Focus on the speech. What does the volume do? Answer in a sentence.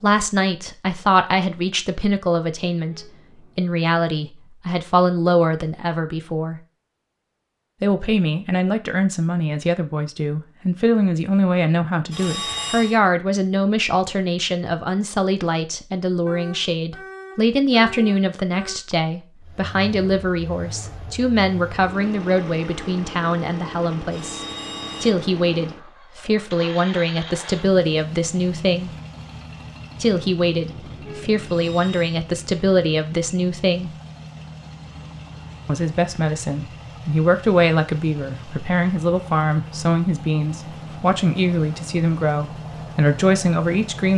The volume of the speech stays about the same.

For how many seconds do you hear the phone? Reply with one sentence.
You can hear the phone for 3 seconds altogether.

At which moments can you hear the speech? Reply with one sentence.
The speech can be heard from 0.0 to 6.6 s, from 7.8 to 28.9 s, from 30.0 to 33.9 s and from 35.6 to 44.1 s.